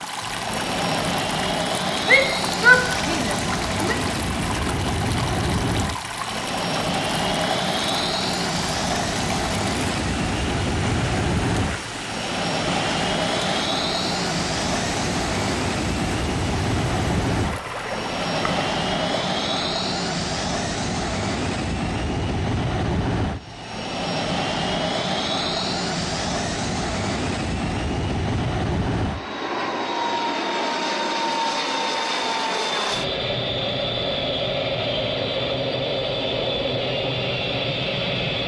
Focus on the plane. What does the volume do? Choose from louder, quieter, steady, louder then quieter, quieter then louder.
steady.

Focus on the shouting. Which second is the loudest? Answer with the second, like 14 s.
3 s.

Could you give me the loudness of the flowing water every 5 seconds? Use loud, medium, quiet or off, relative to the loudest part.
loud, loud, loud, loud, off, off, off, off.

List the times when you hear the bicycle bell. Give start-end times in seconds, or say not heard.
not heard.